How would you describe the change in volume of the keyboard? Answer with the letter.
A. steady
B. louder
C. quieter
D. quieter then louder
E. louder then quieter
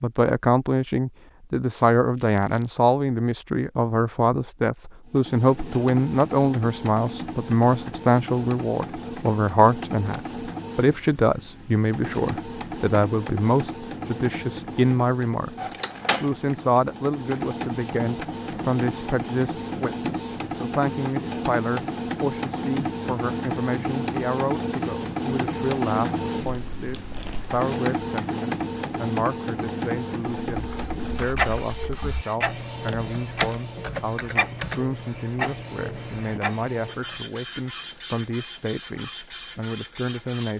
E.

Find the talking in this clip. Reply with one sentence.
The talking can be heard from 0.0 to 40.5 s.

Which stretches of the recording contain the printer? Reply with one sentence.
You can hear the printer from 5.0 to 40.5 s.